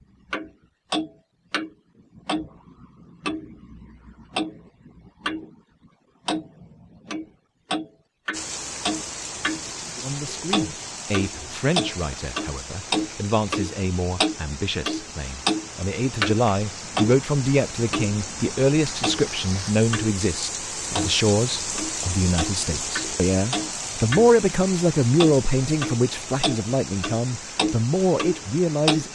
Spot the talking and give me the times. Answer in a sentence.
The talking can be heard from 10.0 to 29.1 s.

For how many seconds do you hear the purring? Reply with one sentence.
You can't hear the purring here.